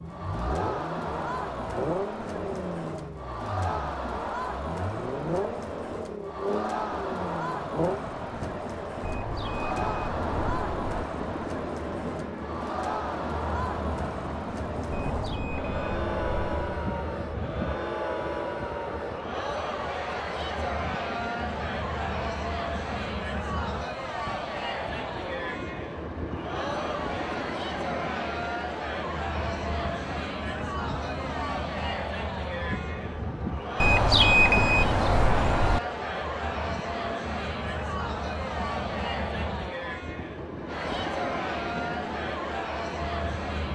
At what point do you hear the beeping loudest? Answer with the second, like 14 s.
34 s.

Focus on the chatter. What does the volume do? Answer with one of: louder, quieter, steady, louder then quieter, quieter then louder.
steady.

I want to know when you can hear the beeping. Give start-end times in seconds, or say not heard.
9.1-11.0, 14.9-16.8, 33.8-35.8.